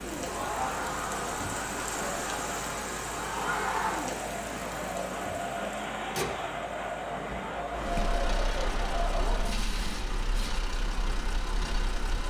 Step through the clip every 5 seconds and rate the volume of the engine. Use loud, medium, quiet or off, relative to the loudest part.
medium, loud, loud.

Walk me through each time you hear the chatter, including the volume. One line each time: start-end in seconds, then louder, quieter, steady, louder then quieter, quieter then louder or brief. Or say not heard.
0.0-9.6 steady.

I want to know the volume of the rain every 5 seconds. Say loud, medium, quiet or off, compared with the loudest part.
loud, medium, medium.